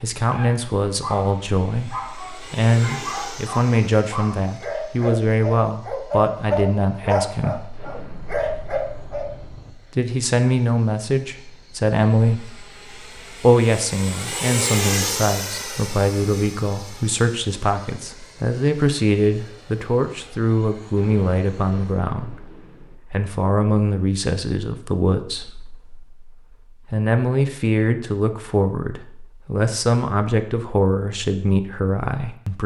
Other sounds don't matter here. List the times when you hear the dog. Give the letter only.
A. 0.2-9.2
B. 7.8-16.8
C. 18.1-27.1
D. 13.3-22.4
A.